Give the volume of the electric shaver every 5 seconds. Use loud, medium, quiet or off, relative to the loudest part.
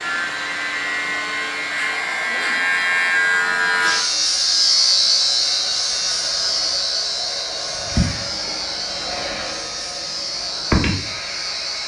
loud, loud, medium.